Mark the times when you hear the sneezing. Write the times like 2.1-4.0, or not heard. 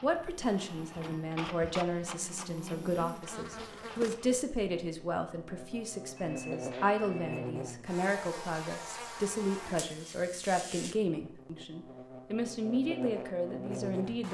not heard.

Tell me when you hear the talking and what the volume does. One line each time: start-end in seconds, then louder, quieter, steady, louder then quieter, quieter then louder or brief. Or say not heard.
0.0-14.2 steady.